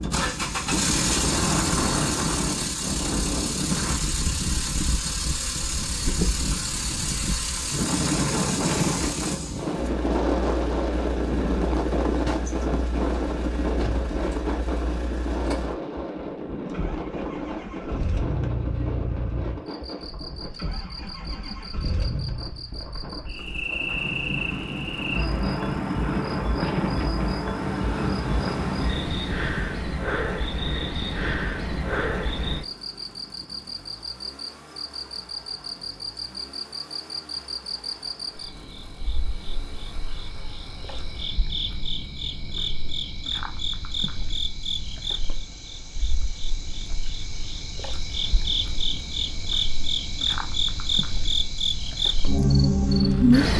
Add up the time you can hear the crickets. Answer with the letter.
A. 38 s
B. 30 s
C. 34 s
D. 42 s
C.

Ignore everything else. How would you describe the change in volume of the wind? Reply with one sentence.
The volume of the wind goes down, then up.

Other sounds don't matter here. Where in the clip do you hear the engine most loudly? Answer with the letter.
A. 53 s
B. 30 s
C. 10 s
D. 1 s
D.